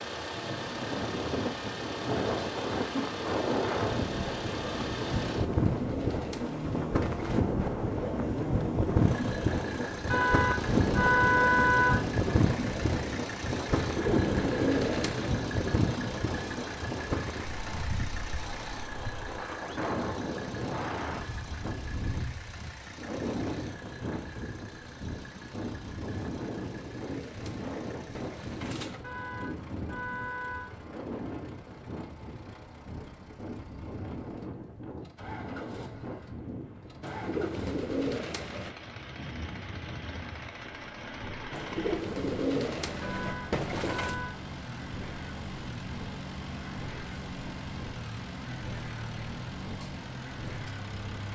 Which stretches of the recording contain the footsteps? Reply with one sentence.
The footsteps can't be heard in this clip.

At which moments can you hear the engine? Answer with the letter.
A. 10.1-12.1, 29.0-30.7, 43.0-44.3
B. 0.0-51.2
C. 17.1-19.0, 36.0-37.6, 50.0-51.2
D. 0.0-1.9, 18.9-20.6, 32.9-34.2
B.